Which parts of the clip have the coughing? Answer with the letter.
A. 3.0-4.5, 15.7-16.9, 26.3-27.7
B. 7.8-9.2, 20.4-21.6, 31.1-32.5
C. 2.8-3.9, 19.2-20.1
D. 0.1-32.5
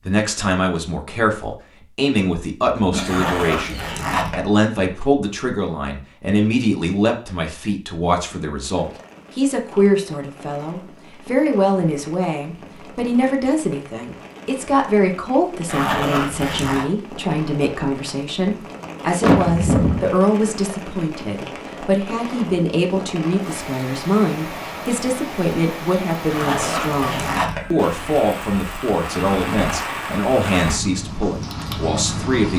C.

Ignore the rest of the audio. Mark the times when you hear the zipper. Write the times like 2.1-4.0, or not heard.
3.0-4.5, 15.7-16.9, 26.3-27.7.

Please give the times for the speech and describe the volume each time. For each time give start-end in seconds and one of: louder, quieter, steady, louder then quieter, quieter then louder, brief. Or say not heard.
0.1-32.5 steady.